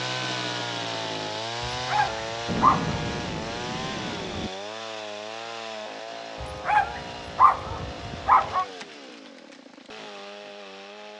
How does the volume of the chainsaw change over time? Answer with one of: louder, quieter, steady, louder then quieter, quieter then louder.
quieter.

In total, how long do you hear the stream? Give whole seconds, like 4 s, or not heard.
not heard.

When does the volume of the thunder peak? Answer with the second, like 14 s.
3 s.